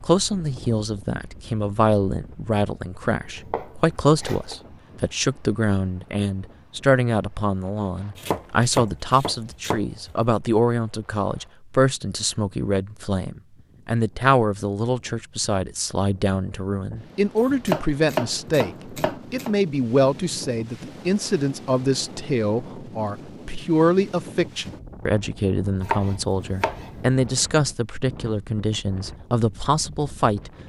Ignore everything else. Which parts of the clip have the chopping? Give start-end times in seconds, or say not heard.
3.0-4.5, 8.2-10.2, 17.4-19.6, 25.8-27.2.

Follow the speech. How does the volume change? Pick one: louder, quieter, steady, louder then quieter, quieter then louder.
steady.